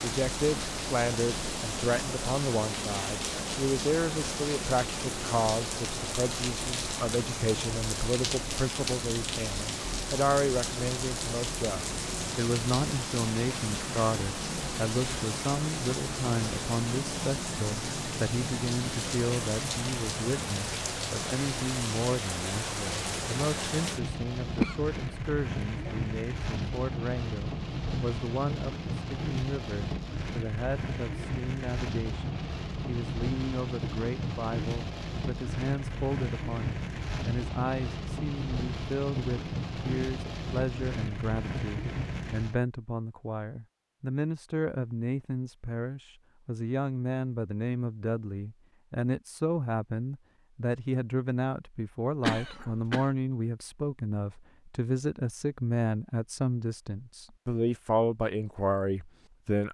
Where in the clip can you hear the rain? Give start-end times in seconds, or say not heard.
0.0-42.6.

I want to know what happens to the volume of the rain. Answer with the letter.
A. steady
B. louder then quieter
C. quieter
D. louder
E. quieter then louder
A.